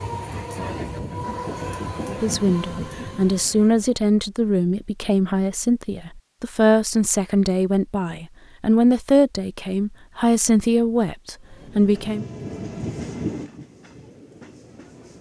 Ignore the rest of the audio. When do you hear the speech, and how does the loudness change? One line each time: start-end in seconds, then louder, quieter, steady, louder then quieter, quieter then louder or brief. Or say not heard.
2.0-12.2 steady.